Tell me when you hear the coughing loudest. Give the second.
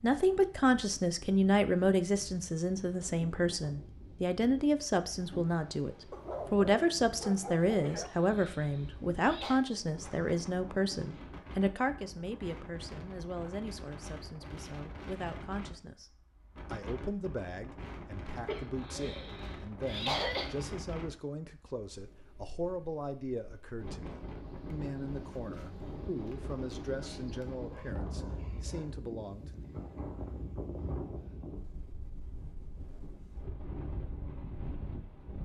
20 s.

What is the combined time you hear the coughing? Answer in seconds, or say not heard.
4 s.